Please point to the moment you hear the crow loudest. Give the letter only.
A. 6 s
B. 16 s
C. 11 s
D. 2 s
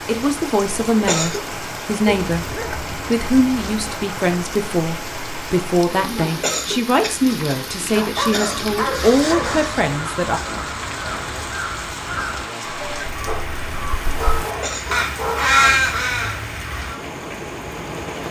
B.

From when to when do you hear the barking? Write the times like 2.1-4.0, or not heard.
2.0-3.8, 7.9-9.8, 13.2-15.6.